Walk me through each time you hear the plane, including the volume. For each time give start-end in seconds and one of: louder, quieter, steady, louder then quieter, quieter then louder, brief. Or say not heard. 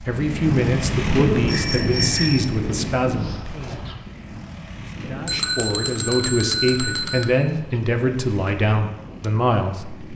0.0-10.1 quieter.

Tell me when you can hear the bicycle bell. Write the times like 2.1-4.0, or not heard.
1.4-2.5, 5.2-7.2.